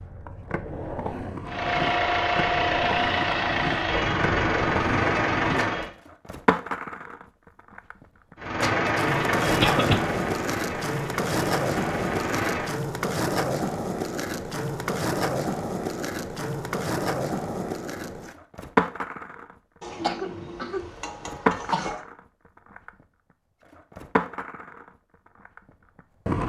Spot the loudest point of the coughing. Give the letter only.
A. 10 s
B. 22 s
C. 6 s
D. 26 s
A.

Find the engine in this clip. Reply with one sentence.
The engine can be heard from 1.4 to 5.9 s and from 8.3 to 12.8 s.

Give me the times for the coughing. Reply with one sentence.
The coughing can be heard from 9.6 to 10.0 s and from 19.8 to 22.0 s.